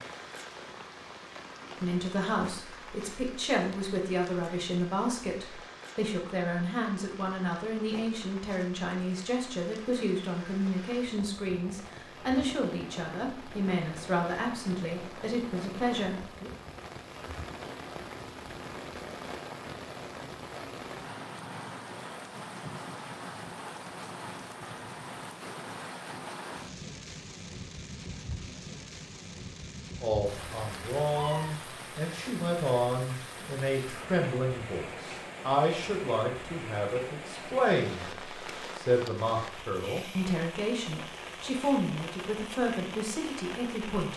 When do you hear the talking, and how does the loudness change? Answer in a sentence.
You can hear the talking from 1.8 to 16.5 s, at a steady volume; and from 30.0 to 44.1 s, at a steady volume.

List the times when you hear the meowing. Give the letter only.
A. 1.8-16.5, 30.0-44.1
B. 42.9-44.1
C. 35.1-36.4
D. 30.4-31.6
D.